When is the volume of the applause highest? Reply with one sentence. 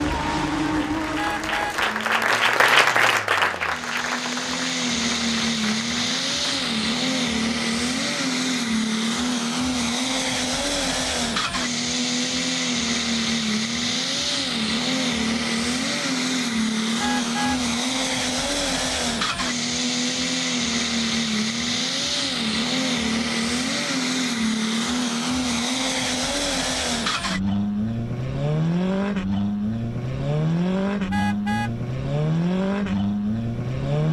The volume of the applause peaks at 3 seconds.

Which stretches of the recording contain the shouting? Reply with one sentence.
The shouting can't be heard in this clip.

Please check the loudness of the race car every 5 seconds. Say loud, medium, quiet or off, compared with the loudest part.
medium, loud, loud, loud, loud, loud, loud.